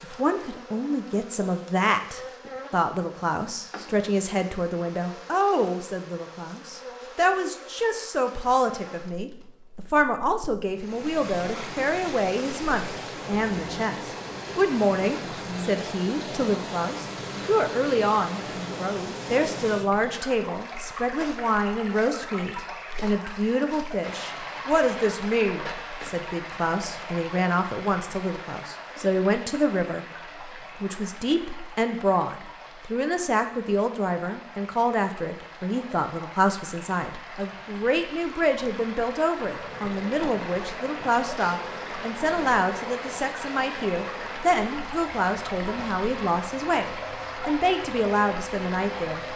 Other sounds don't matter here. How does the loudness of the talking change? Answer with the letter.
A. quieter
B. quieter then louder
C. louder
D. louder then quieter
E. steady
E.